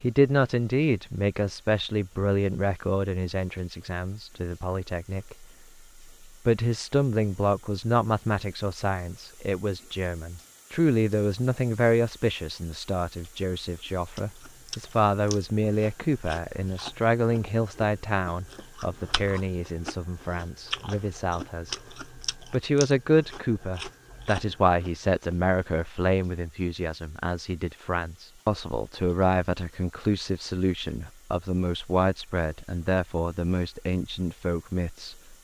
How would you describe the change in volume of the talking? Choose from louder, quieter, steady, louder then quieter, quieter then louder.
steady.